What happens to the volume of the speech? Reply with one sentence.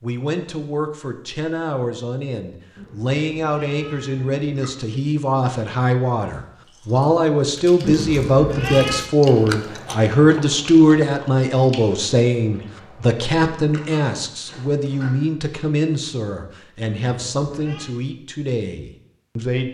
The loudness of the speech goes up, then down.